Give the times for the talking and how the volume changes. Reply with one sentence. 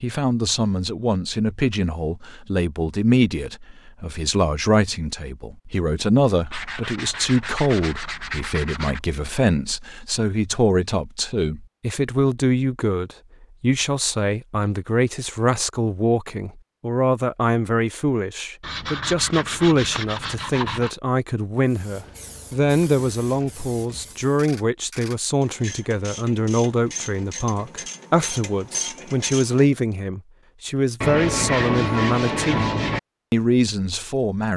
You can hear the talking from 0.0 to 34.5 s, at a steady volume.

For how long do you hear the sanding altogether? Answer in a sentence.
You can hear the sanding for 7 seconds altogether.